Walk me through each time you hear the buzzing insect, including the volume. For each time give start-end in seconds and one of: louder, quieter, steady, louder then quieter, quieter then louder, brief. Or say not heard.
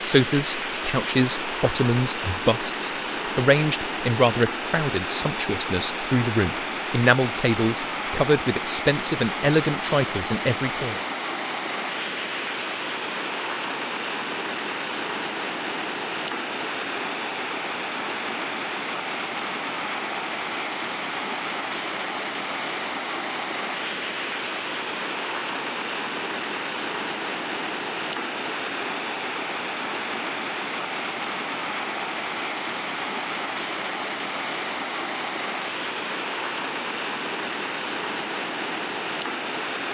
not heard.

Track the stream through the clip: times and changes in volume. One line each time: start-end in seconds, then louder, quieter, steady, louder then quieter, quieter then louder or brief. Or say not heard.
0.0-39.8 steady.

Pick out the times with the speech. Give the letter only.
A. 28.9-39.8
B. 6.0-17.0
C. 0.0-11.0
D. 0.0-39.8
C.